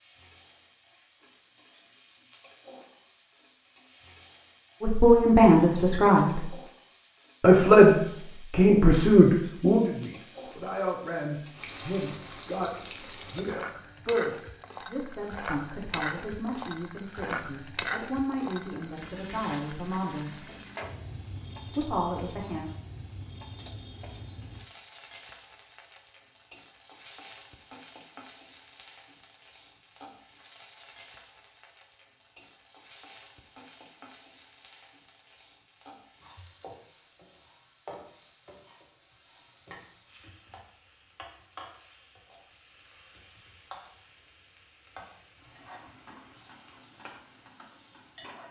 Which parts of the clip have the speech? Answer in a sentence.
You can hear the speech from 4.8 to 6.5 s, from 7.4 to 20.4 s and from 21.8 to 22.6 s.